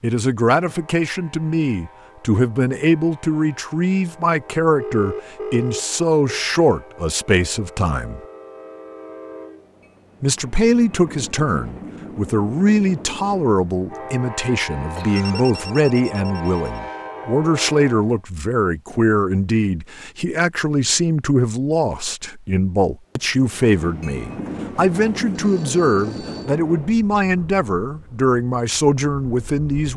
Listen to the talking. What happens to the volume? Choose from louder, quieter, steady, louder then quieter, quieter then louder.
steady.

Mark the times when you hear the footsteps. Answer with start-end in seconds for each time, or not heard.
not heard.